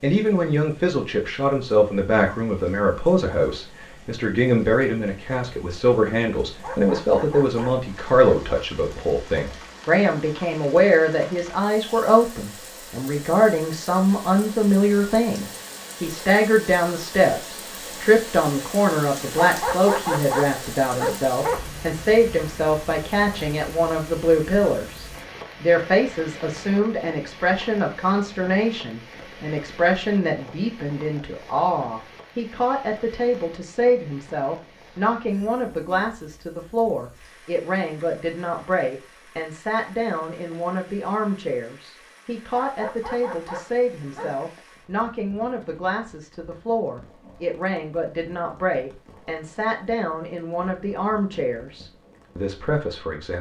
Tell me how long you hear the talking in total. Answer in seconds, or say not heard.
53 s.